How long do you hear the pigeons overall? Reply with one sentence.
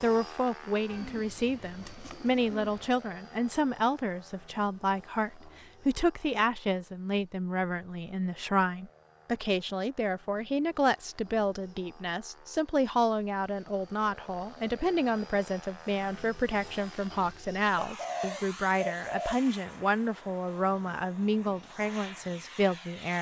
You can hear the pigeons for 4 seconds altogether.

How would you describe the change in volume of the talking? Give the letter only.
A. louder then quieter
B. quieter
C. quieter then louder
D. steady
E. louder
D.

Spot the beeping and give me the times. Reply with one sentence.
You can't hear the beeping here.